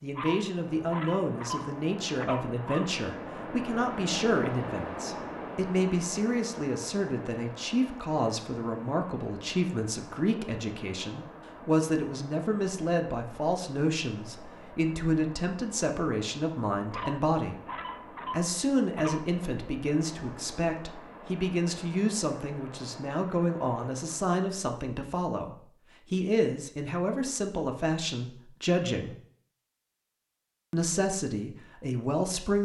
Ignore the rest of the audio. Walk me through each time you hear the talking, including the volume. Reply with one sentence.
You can hear the talking from 0.0 to 17.6 s, at a steady volume; from 18.3 to 29.1 s, at a steady volume; and briefly from 30.7 to 32.6 s.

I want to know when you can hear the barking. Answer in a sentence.
You can hear the barking from 0.1 to 2.9 s and from 16.9 to 19.4 s.